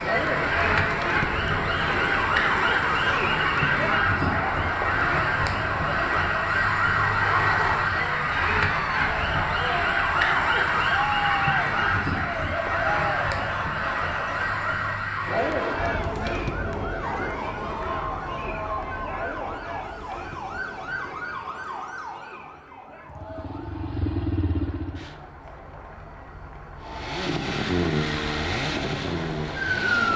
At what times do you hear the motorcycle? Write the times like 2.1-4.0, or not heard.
23.1-25.1, 26.8-30.1.